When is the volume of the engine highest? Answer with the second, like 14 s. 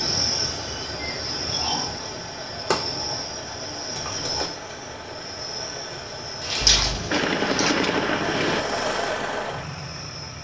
9 s.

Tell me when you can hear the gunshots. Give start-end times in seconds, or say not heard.
6.6-8.6.